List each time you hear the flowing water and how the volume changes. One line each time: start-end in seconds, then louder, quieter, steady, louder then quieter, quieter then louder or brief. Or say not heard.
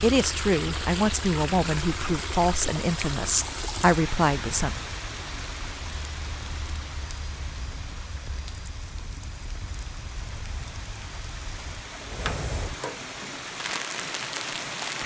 0.0-15.0 quieter then louder.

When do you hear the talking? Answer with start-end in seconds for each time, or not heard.
0.0-4.8.